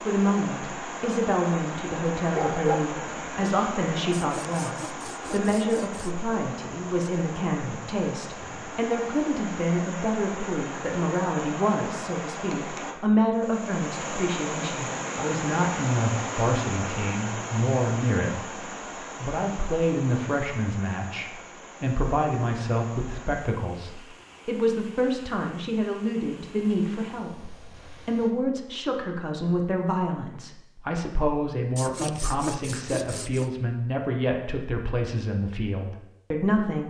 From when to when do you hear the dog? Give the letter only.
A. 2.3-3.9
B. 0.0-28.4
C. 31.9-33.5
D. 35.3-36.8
A.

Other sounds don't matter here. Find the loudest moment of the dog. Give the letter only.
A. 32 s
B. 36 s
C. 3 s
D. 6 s
C.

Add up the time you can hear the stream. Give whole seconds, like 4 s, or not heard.
28 s.